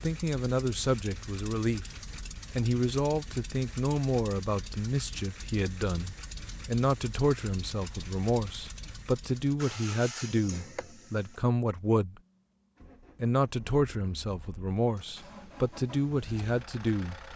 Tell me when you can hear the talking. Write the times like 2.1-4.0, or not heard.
0.0-1.9, 2.5-12.2, 13.2-17.1.